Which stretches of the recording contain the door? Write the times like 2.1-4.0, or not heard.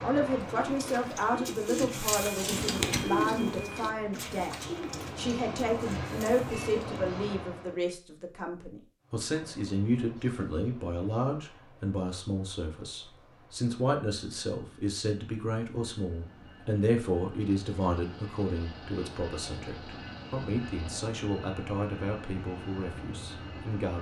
not heard.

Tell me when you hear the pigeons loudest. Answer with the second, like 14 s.
3 s.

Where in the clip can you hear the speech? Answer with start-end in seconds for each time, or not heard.
0.0-23.9.